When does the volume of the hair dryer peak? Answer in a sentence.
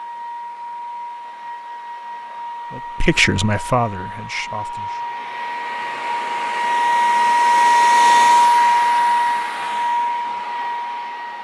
The loudest moment of the hair dryer is at 8 seconds.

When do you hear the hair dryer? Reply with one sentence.
You can hear the hair dryer from 0.0 to 11.3 s.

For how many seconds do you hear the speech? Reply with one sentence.
The speech can be heard for 2 seconds in total.